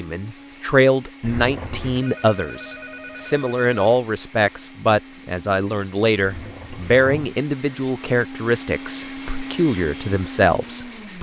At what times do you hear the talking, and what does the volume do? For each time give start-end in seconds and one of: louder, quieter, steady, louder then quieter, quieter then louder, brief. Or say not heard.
0.0-11.1 steady.